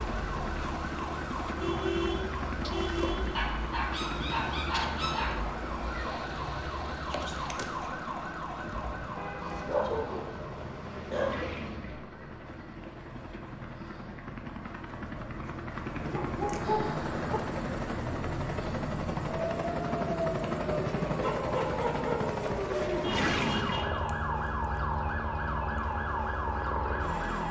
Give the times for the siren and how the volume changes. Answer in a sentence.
The siren can be heard from 0.0 to 27.4 s, getting quieter then louder.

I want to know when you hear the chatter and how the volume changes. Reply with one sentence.
The chatter can't be heard in this clip.